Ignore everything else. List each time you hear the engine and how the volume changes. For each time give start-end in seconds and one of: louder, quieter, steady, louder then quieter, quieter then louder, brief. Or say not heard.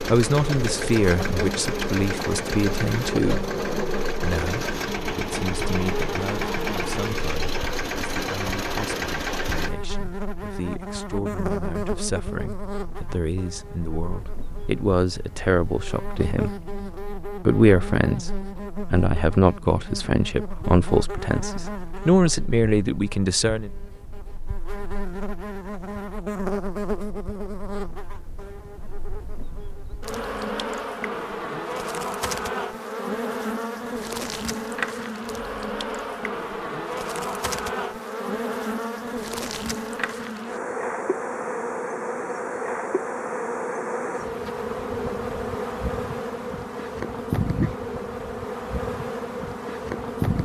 0.0-9.7 steady.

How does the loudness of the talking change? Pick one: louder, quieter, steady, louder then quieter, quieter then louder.
quieter then louder.